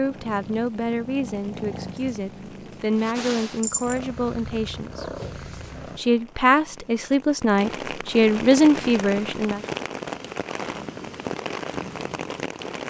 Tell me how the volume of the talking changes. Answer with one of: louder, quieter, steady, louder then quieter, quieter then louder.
louder.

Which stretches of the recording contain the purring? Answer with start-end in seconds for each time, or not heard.
0.0-6.0.